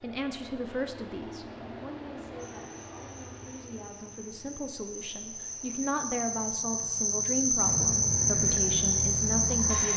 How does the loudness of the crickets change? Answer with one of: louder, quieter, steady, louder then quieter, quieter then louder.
louder.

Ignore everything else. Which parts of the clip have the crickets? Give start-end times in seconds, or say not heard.
2.4-9.9.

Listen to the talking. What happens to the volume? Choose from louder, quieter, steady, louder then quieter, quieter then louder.
quieter then louder.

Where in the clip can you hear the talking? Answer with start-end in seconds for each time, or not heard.
0.0-9.9.